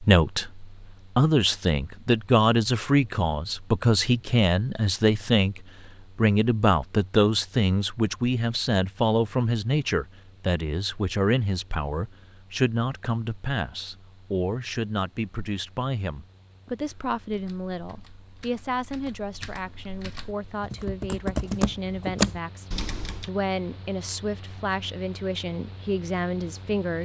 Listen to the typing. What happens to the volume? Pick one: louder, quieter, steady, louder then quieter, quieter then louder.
louder.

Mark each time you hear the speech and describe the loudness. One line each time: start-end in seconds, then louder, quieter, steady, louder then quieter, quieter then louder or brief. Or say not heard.
0.0-27.0 quieter.